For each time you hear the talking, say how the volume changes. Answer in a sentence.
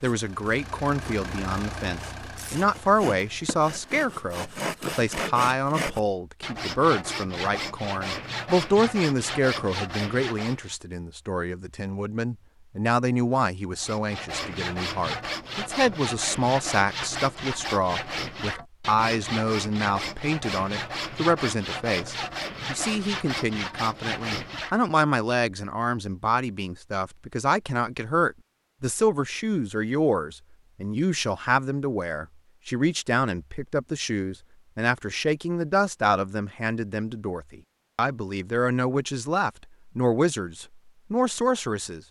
The talking can be heard from 0.0 to 42.0 s, at a steady volume.